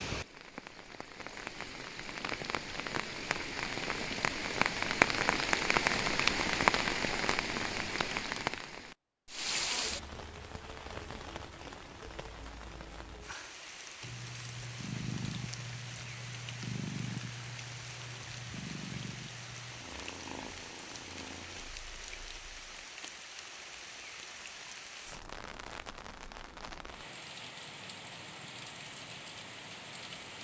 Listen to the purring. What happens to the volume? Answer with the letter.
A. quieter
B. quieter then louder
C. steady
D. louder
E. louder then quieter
A.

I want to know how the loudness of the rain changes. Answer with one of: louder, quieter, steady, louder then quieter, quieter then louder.
quieter.